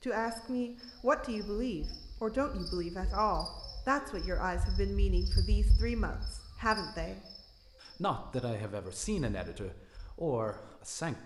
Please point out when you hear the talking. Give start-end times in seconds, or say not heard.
0.0-7.2, 8.0-11.2.